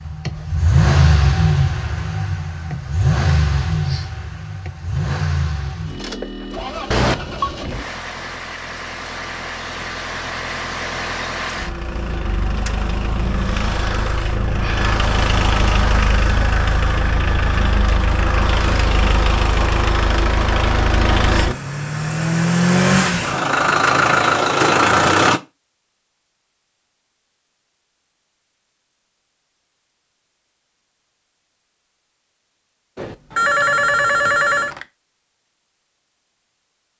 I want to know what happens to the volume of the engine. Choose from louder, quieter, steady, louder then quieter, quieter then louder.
quieter then louder.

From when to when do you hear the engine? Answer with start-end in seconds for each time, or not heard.
0.0-25.4.